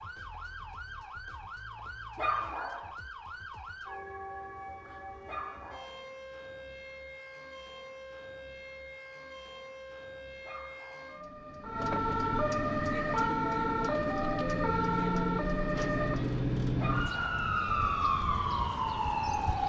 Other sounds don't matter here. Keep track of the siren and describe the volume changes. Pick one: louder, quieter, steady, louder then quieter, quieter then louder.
louder.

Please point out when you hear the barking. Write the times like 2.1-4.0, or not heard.
2.1-2.9, 5.2-6.0, 10.4-11.2, 16.8-17.6.